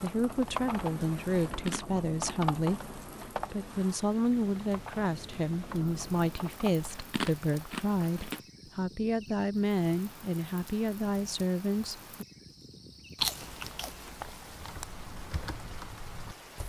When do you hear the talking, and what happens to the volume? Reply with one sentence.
You can hear the talking from 0.0 to 12.2 s, at a steady volume.